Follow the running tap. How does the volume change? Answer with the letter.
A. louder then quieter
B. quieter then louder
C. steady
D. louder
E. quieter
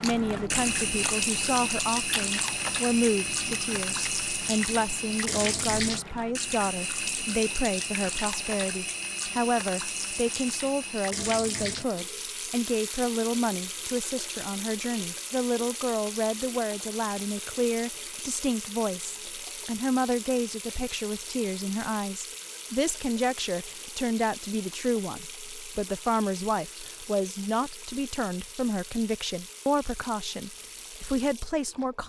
E.